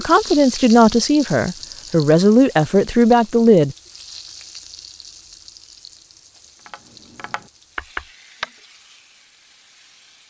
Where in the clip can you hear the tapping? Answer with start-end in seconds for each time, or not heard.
6.7-8.5.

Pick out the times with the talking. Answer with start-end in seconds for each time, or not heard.
0.0-3.8.